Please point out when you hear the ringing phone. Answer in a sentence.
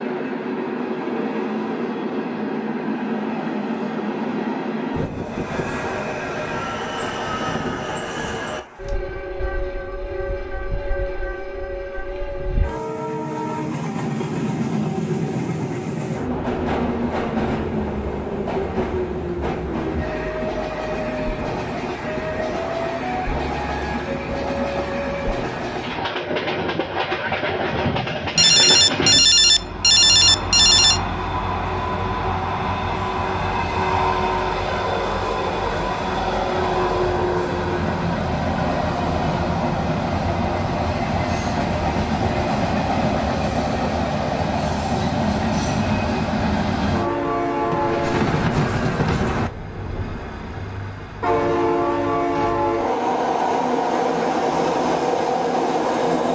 You can hear the ringing phone from 28.4 to 31.0 s.